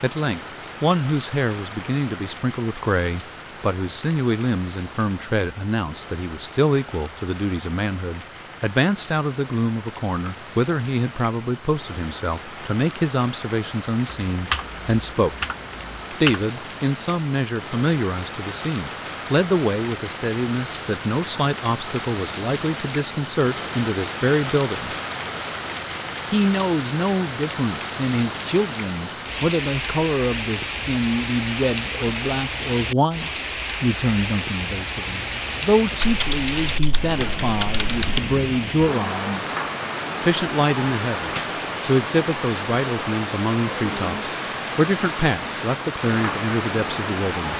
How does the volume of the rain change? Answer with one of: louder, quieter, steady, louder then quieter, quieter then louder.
louder.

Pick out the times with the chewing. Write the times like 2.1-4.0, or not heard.
not heard.